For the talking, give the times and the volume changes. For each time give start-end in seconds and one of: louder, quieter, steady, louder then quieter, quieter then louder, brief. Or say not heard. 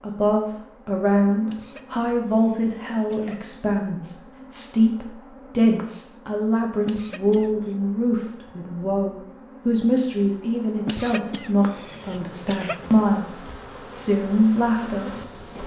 0.0-15.6 steady.